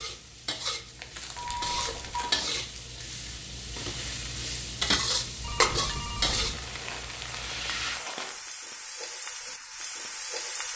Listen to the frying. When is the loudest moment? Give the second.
5 s.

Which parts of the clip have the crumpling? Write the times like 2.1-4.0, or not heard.
0.9-2.6, 6.3-8.4.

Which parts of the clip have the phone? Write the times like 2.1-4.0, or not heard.
1.4-2.4, 5.4-6.6.